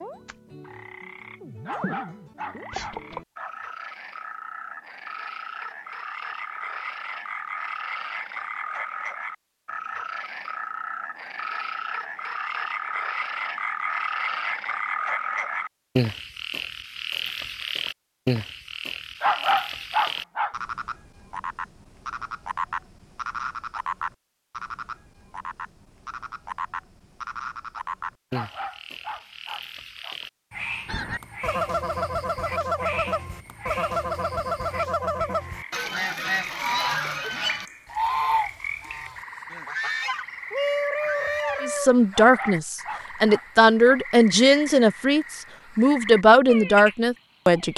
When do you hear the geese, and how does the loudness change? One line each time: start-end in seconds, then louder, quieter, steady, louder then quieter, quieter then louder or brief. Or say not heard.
30.9-41.9 steady.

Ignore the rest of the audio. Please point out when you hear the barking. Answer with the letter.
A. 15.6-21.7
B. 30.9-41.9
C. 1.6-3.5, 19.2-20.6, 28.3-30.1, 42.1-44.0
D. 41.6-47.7
C.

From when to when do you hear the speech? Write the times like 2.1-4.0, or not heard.
41.6-47.7.